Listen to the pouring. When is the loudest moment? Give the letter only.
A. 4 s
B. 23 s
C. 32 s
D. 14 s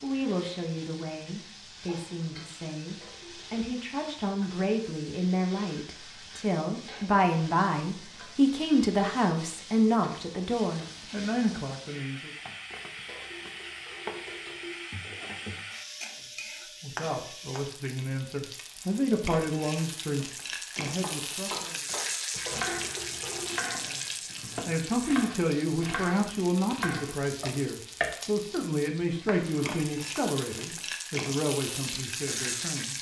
B.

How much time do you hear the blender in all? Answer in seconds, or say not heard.
not heard.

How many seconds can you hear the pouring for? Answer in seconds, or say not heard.
4 s.